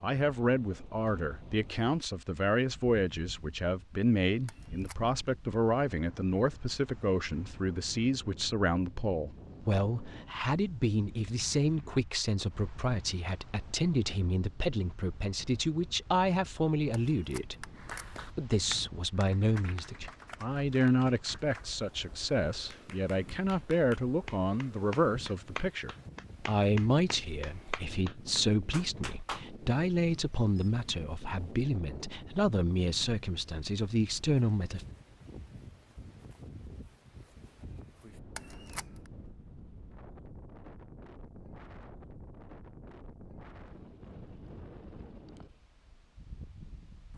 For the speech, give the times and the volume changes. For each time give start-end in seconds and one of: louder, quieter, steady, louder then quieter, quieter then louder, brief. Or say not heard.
0.0-34.9 steady.